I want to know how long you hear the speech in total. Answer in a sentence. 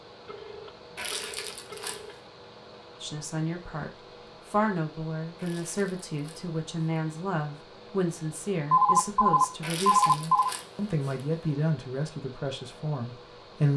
The speech can be heard for 11 seconds in total.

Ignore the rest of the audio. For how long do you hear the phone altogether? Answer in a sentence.
You can hear the phone for 4 seconds altogether.